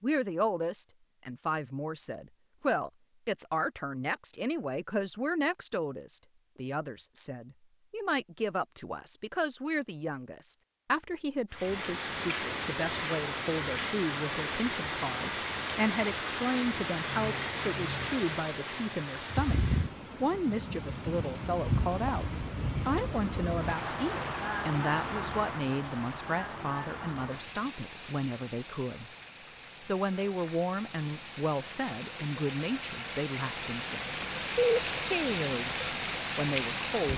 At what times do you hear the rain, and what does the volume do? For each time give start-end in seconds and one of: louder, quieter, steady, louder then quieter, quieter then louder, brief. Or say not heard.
11.5-37.1 quieter then louder.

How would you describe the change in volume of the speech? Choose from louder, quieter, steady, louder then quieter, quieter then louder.
steady.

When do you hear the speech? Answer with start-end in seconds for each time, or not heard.
0.0-37.1.